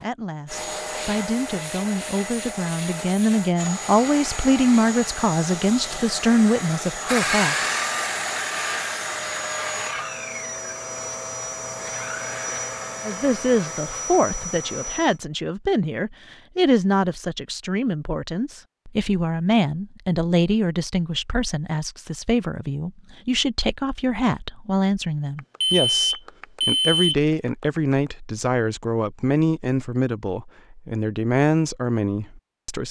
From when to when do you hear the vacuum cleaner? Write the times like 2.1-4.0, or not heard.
0.0-15.2.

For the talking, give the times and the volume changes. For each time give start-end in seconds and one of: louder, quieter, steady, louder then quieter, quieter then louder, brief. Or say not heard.
0.0-7.5 louder
13.0-32.8 steady.